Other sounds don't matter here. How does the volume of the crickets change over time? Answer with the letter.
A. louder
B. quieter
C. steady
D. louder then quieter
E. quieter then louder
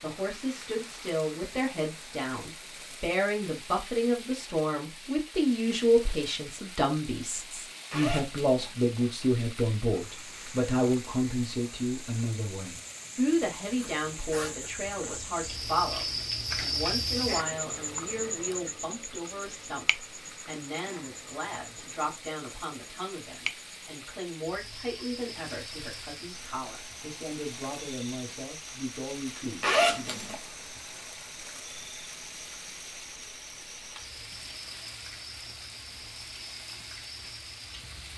D.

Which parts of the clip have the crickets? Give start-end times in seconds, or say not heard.
9.9-38.1.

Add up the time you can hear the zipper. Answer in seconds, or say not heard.
4 s.